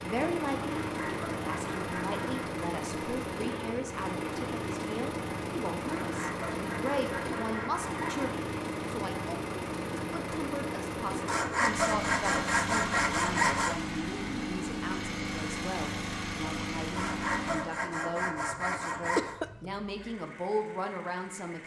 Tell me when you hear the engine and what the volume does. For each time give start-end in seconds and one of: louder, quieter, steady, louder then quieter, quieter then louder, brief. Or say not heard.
0.0-21.6 quieter.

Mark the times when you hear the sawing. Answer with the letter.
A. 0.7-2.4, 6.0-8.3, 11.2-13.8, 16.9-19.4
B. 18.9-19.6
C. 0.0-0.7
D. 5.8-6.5
A.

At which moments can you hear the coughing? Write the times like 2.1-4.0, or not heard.
18.9-19.6.